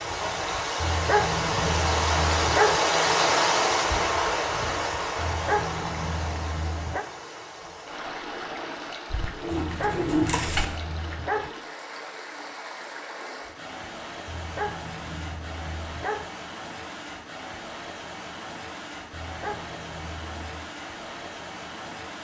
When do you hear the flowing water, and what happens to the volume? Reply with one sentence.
The flowing water can be heard from 0.0 to 22.1 s, getting quieter.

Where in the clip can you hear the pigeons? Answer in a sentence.
The pigeons can be heard from 9.1 to 10.7 s.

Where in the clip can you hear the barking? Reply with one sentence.
You can hear the barking from 0.8 to 2.8 s, from 5.2 to 7.0 s, from 9.6 to 11.5 s, from 14.2 to 16.3 s and from 19.1 to 20.6 s.